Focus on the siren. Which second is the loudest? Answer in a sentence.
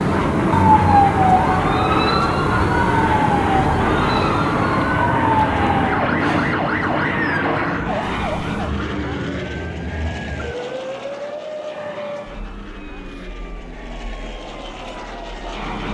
The loudest moment of the siren is at 1 second.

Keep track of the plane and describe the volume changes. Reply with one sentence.
The loudness of the plane goes down.